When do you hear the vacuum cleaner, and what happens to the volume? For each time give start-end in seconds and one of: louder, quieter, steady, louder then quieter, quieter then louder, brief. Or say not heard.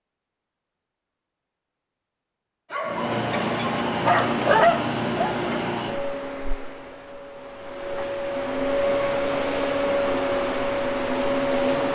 2.9-11.9 quieter then louder.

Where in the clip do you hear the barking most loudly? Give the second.
5 s.